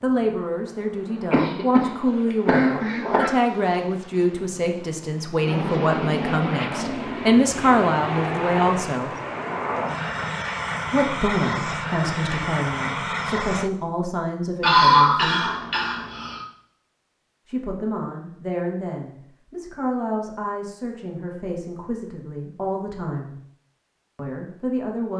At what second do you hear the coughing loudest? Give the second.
15 s.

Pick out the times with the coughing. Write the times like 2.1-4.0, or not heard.
1.3-3.3, 14.6-16.4.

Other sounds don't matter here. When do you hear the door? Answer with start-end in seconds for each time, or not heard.
not heard.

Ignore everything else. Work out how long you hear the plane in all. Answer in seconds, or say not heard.
14 s.